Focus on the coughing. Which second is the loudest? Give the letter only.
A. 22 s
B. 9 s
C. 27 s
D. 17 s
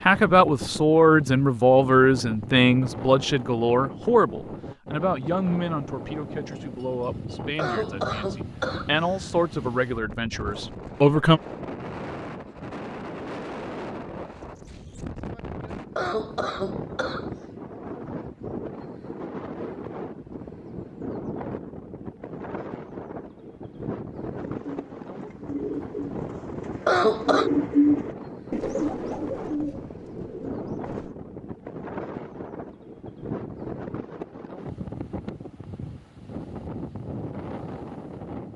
C.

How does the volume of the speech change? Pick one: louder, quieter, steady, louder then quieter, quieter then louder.
quieter then louder.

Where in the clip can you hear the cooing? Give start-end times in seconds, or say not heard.
24.6-31.1.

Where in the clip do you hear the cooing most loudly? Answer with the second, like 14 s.
28 s.